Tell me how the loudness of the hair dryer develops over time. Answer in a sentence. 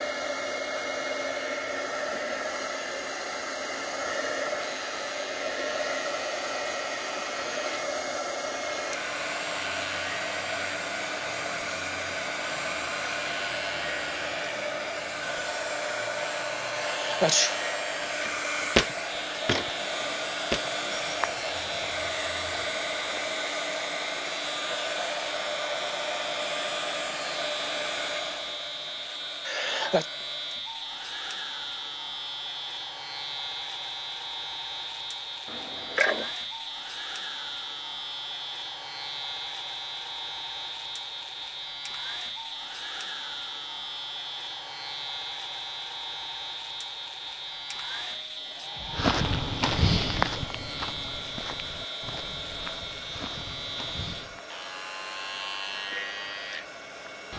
The volume of the hair dryer goes down.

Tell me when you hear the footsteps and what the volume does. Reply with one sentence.
You can hear the footsteps from 18.2 to 23.4 s, getting quieter; and from 48.9 to 54.5 s, getting quieter.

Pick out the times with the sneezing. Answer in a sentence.
You can hear the sneezing from 16.7 to 17.7 s and from 29.4 to 30.1 s.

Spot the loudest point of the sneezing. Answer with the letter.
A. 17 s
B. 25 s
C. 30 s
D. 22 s
A.